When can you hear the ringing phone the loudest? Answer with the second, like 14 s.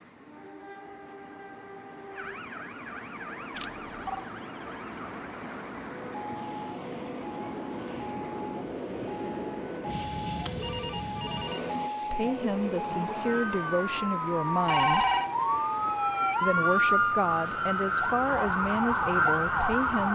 15 s.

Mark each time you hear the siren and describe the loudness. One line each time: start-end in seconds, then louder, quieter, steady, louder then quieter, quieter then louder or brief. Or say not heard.
2.1-20.1 louder.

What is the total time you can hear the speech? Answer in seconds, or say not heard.
7 s.